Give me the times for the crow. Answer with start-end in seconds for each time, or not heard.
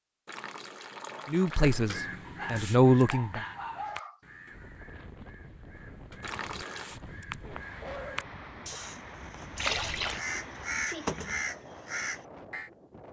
1.6-12.7.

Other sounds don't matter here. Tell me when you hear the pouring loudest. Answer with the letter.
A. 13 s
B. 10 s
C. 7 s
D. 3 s
B.